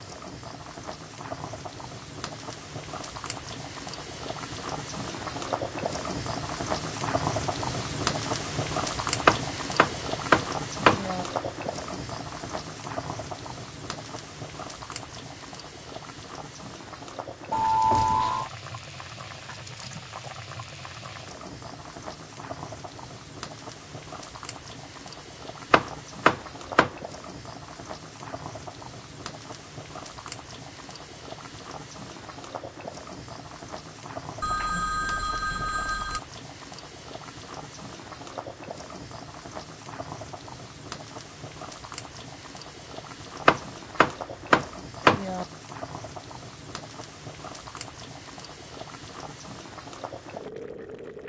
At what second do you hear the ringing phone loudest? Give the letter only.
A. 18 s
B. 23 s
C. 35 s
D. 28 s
A.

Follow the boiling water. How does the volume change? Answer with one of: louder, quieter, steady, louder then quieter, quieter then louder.
quieter.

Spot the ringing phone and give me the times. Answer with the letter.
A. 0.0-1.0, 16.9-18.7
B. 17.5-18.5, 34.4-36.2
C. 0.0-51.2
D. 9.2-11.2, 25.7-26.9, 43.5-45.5
B.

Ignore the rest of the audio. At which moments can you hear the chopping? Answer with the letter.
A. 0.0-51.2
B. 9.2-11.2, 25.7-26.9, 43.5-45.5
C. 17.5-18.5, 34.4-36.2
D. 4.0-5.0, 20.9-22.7
B.